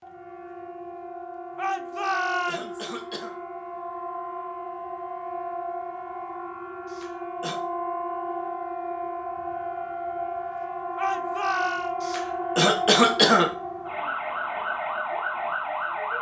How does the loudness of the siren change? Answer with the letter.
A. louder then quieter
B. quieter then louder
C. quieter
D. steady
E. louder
E.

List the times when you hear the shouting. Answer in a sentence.
The shouting can be heard from 1.6 to 3.0 s and from 10.9 to 11.9 s.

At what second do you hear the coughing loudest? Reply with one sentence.
The volume of the coughing peaks at 13 seconds.